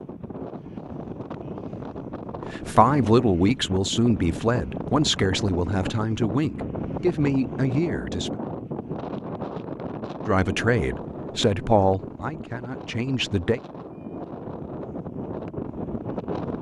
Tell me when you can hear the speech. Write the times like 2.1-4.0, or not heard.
2.5-8.4, 10.2-13.6.